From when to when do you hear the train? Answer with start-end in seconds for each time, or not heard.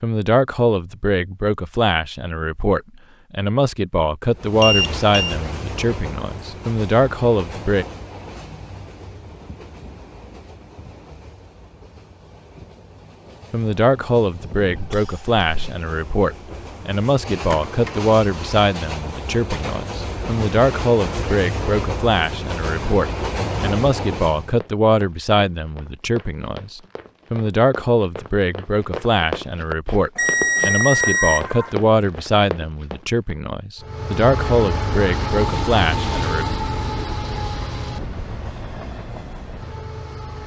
4.3-24.6, 33.8-40.4.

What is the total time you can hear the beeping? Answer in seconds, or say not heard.
3 s.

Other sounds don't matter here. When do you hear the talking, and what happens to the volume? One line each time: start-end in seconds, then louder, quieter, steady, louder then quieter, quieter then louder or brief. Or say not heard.
0.0-7.8 steady
13.5-36.5 steady.